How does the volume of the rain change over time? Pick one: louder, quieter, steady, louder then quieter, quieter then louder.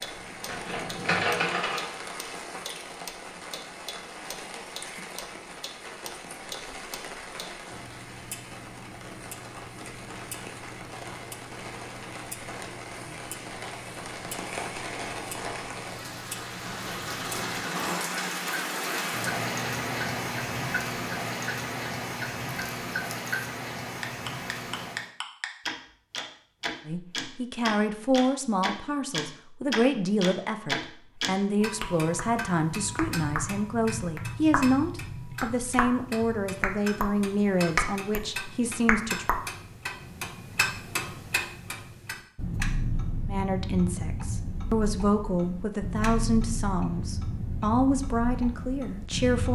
louder.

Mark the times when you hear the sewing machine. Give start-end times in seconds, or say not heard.
0.1-1.9.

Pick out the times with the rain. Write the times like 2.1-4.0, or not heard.
0.0-25.1.